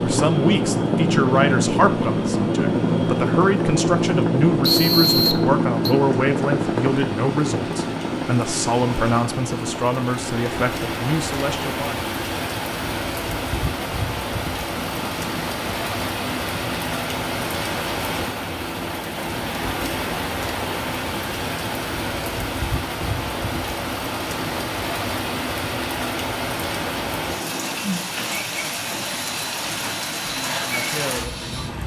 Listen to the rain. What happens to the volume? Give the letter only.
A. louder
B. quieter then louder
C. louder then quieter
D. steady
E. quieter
A.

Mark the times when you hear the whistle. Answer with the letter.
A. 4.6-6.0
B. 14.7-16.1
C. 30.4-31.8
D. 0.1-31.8
A.